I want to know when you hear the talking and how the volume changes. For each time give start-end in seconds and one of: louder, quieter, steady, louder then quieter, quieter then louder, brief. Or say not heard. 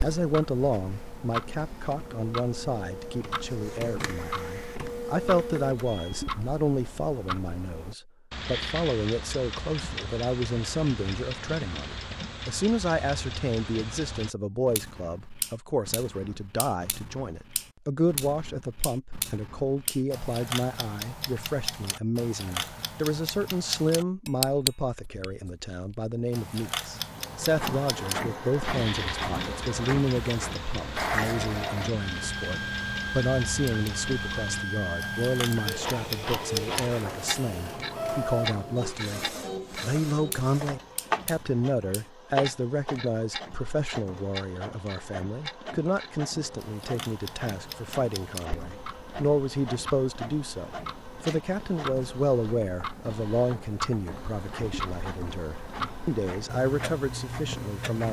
0.0-58.0 steady.